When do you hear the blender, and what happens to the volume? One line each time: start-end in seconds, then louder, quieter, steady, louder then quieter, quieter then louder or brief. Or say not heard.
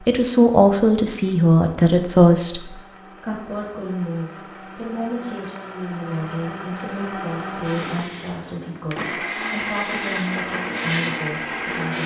0.0-12.0 louder.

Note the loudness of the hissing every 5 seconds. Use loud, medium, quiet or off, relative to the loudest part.
off, medium, loud.